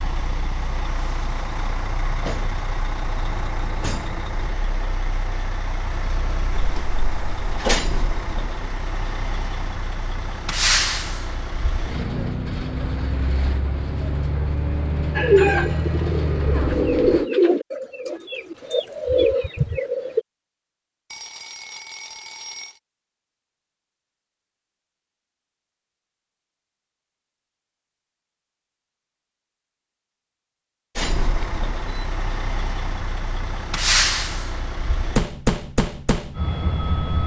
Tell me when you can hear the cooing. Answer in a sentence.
You can hear the cooing from 15.2 to 20.2 s.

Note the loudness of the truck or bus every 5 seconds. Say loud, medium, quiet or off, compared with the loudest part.
medium, medium, loud, loud, off, off, loud, loud.